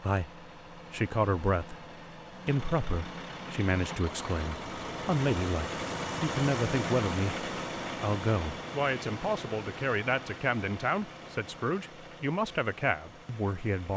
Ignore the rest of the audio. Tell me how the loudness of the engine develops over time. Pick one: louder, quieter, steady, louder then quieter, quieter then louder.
louder then quieter.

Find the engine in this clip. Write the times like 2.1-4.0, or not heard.
0.0-13.9.